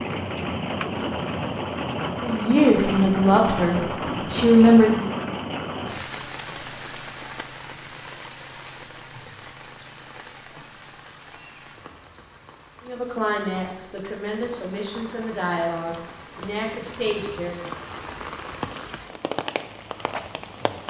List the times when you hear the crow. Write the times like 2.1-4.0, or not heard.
not heard.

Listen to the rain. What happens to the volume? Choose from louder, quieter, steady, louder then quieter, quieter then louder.
quieter then louder.